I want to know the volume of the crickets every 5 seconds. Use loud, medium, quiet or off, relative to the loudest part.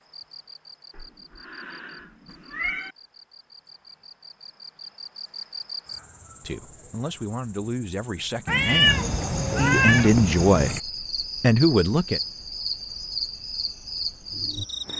quiet, loud, loud.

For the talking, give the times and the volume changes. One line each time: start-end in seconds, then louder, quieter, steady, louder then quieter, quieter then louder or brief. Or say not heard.
6.4-10.8 louder
11.4-12.2 brief.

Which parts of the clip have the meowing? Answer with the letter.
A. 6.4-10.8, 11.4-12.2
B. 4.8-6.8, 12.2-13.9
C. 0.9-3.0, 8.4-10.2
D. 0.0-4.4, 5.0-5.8
C.